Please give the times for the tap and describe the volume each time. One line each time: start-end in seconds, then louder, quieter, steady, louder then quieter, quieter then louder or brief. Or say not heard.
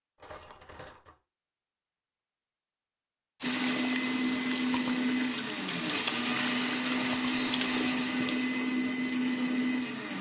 3.4-8.7 steady.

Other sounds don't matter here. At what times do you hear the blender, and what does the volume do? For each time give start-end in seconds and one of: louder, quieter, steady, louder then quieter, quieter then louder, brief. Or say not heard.
3.4-10.1 steady.